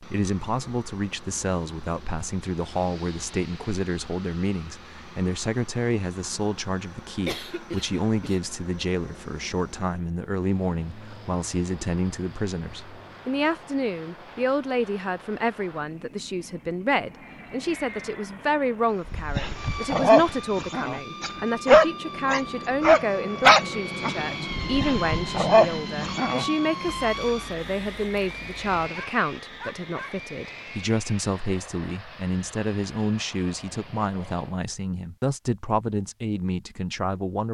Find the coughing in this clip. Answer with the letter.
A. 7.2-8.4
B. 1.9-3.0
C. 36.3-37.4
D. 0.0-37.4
A.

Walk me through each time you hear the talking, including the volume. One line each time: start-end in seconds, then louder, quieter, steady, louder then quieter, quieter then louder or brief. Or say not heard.
0.0-37.4 steady.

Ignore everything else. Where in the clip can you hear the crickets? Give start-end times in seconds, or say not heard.
not heard.